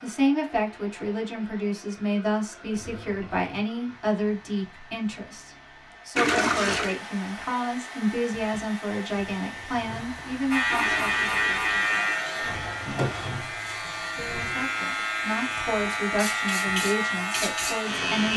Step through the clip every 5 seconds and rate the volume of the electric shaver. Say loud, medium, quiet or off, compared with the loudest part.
off, off, loud, loud.